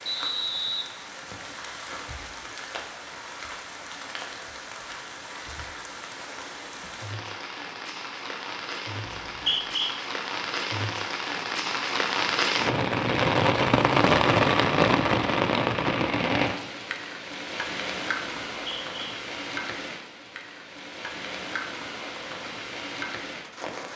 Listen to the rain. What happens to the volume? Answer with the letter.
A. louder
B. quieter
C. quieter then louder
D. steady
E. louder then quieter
E.